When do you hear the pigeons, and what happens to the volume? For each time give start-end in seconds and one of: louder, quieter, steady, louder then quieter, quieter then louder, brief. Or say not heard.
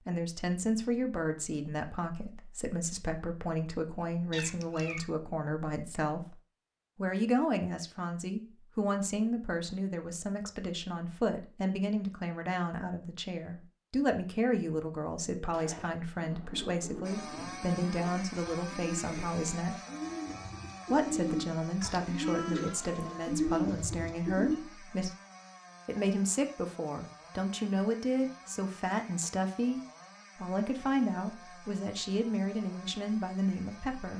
15.3-24.6 louder.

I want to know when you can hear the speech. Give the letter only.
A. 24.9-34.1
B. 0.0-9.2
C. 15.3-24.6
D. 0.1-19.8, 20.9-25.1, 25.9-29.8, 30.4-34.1
D.